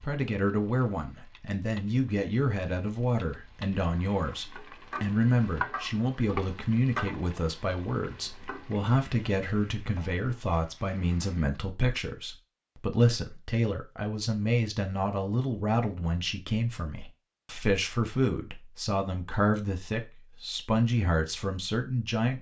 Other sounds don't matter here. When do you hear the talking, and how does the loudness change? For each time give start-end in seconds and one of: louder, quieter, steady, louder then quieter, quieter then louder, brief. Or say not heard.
0.0-22.3 steady.